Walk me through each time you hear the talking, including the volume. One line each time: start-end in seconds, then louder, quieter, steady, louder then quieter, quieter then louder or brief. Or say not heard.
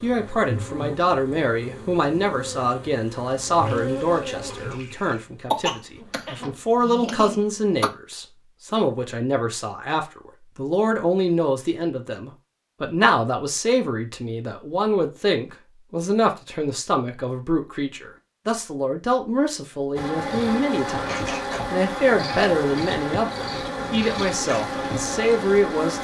0.0-25.9 steady.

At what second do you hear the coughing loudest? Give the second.
6 s.